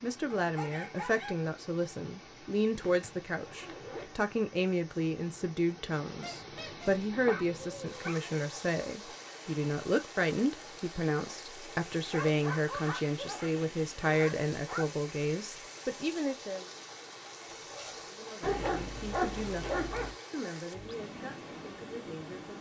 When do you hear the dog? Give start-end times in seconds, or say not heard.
0.3-1.4, 6.2-8.3, 12.1-14.8, 18.4-20.1.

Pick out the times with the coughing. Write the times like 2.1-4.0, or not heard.
not heard.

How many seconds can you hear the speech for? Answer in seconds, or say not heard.
21 s.